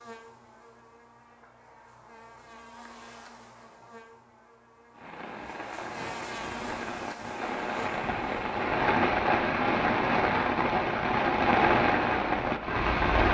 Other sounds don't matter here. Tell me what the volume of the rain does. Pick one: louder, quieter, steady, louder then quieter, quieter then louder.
louder.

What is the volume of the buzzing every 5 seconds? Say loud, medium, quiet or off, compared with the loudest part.
medium, loud, off.